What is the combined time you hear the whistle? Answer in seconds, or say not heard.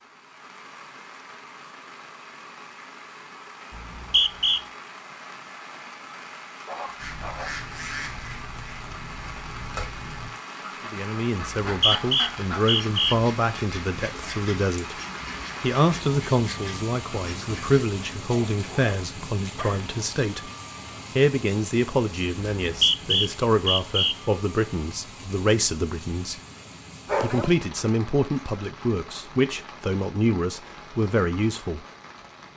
4 s.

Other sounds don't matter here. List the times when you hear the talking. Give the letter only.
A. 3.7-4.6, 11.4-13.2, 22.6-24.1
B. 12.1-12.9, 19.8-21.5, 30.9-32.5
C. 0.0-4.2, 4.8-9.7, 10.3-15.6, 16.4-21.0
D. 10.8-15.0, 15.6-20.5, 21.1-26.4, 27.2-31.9
D.